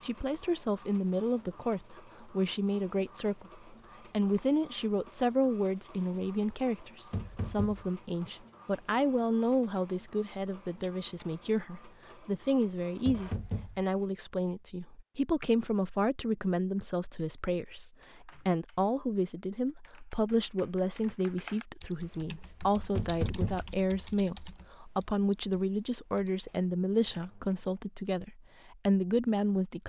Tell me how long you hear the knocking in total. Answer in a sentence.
The knocking can be heard for 2 seconds in total.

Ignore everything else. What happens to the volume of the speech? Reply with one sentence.
The loudness of the speech stays about the same.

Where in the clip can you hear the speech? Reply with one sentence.
You can hear the speech from 0.0 to 29.8 s.